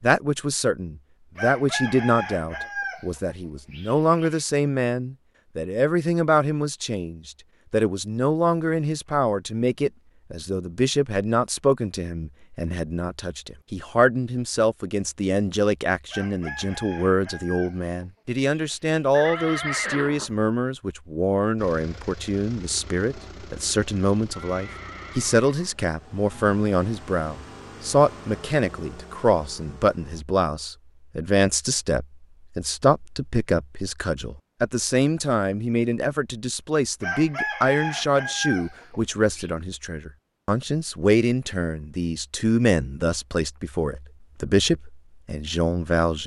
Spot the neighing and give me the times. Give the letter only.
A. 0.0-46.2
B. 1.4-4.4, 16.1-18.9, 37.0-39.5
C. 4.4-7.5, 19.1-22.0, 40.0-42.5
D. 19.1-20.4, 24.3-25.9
D.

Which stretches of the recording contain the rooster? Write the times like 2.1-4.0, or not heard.
1.4-4.4, 16.1-18.9, 37.0-39.5.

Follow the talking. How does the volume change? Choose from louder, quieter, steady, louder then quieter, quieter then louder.
steady.